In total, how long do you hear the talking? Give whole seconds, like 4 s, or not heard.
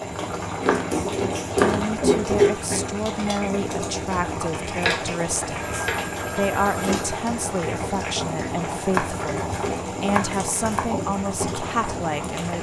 11 s.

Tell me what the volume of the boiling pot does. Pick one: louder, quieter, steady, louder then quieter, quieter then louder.
quieter.